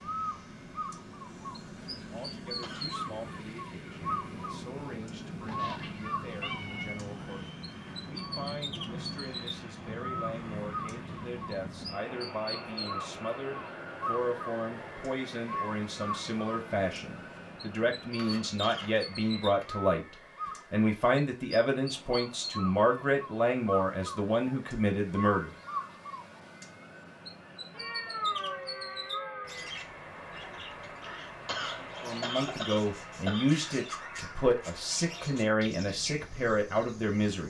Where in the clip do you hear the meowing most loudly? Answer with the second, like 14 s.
28 s.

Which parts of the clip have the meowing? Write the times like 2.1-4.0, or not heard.
5.5-7.0, 18.1-19.8, 27.7-29.7.